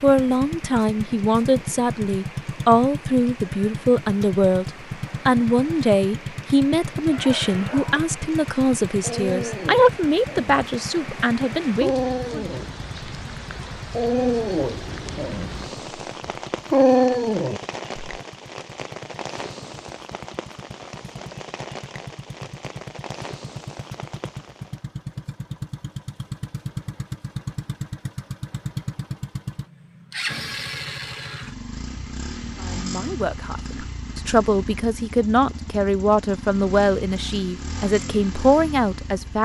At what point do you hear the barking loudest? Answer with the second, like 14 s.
17 s.